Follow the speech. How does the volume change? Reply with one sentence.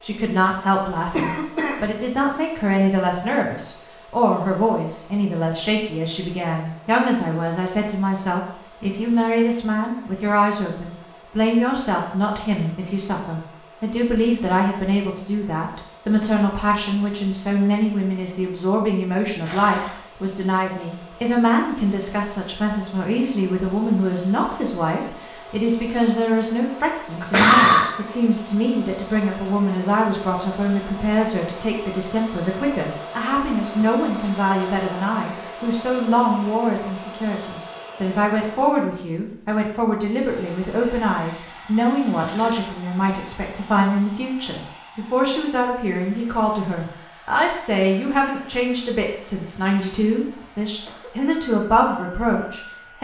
The volume of the speech stays about the same.